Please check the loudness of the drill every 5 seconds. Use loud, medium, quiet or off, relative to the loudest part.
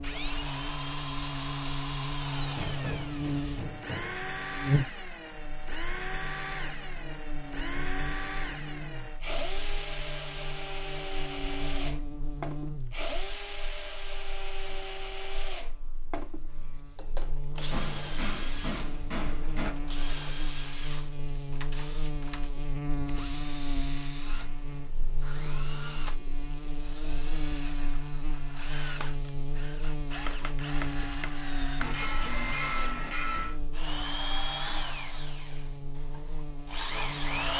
loud, loud, loud, medium, medium, medium, loud, loud.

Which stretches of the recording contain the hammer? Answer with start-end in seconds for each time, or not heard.
2.4-4.2, 17.7-19.7, 31.8-33.5.